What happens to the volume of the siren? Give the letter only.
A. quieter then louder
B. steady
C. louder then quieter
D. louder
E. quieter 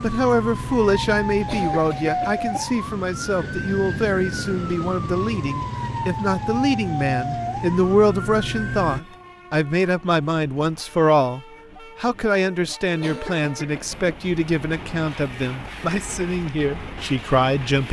B.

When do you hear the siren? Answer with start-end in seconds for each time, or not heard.
0.0-9.0.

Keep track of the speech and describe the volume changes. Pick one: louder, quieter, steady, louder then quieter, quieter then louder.
steady.